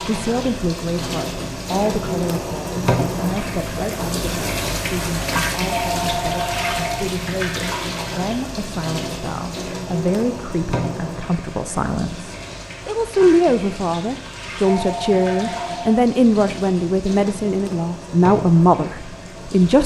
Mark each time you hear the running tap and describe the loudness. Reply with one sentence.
The running tap can be heard from 0.0 to 19.8 s, getting quieter.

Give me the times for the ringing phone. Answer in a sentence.
You can hear the ringing phone from 5.7 to 7.2 s and from 14.7 to 16.0 s.